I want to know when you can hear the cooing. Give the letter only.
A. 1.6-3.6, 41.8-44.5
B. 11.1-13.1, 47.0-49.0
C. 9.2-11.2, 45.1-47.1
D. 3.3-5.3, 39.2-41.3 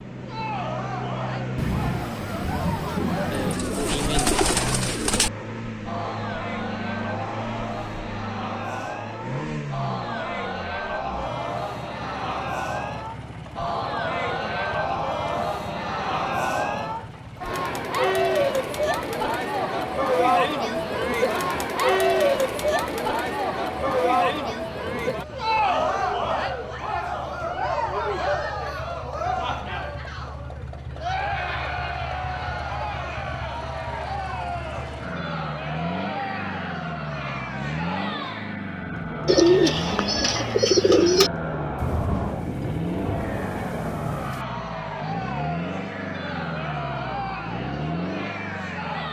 D.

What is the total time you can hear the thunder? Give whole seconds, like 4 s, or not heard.
5 s.